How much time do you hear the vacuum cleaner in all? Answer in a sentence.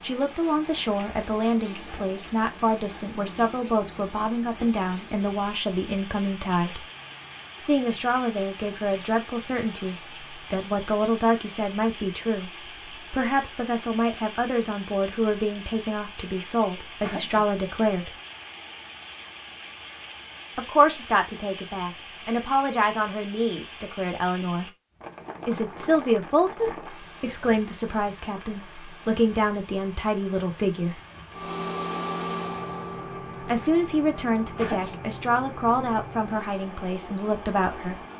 You can hear the vacuum cleaner for 7 seconds altogether.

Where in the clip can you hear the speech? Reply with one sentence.
You can hear the speech from 0.0 to 6.8 s, from 7.6 to 18.1 s, from 20.6 to 24.6 s, from 25.4 to 31.0 s and from 33.4 to 38.0 s.